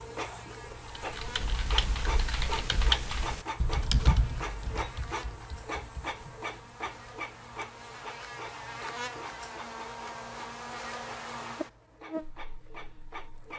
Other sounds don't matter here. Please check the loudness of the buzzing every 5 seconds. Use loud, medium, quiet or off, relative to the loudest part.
medium, loud, loud.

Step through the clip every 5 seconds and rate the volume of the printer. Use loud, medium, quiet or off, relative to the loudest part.
loud, loud, medium.